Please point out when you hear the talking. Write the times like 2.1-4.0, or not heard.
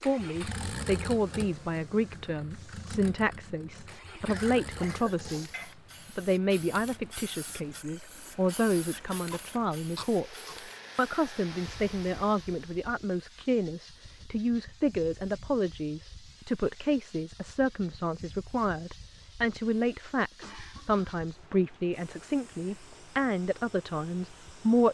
0.1-24.8.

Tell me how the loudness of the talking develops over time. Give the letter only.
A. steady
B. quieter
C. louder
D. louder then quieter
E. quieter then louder
A.